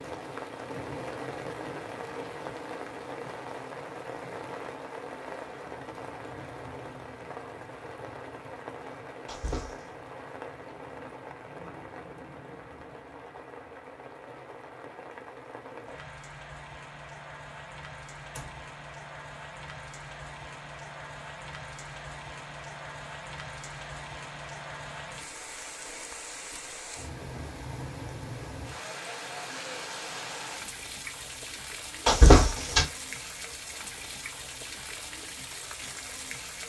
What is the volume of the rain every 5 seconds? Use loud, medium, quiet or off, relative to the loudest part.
loud, loud, medium, medium, loud, loud, loud, loud.